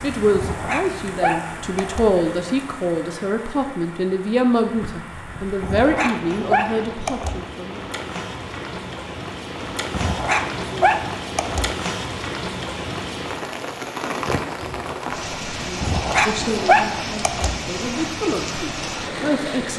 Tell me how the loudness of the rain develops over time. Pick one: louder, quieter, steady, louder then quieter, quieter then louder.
louder.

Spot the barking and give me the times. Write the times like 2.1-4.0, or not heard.
0.3-2.1, 5.6-7.4, 9.9-11.7, 15.8-17.6.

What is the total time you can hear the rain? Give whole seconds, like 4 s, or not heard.
20 s.